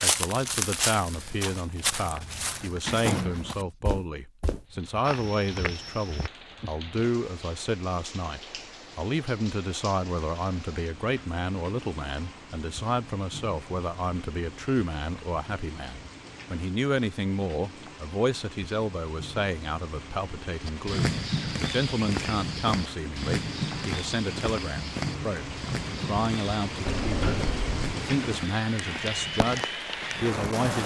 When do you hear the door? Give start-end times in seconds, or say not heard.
2.4-3.7, 26.9-27.9.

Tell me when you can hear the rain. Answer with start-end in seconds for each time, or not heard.
4.7-30.8.